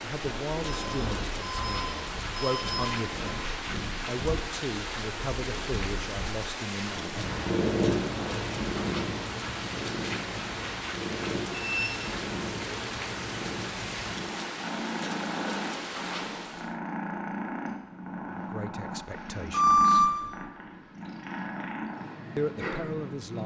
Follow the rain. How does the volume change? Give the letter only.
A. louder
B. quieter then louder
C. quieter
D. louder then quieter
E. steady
E.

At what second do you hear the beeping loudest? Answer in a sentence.
The loudest moment of the beeping is at 20 seconds.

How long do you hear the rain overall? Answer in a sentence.
The rain can be heard for 17 seconds in total.